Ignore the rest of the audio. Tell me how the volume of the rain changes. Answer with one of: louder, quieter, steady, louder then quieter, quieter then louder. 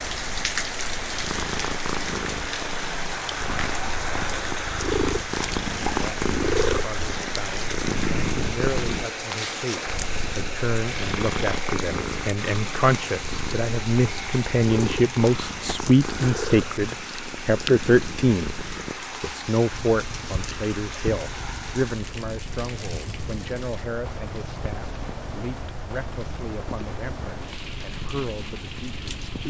quieter.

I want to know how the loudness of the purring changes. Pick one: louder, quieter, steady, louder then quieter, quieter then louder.
quieter.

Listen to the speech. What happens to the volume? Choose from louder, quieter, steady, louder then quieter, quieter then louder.
louder then quieter.